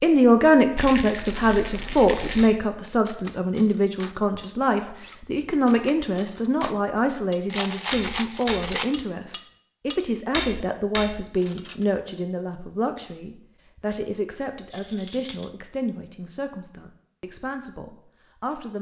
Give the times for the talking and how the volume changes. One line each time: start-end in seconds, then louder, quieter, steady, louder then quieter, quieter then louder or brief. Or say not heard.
0.0-18.7 quieter.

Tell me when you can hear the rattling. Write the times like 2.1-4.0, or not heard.
0.8-2.5, 7.5-8.9, 14.7-15.5.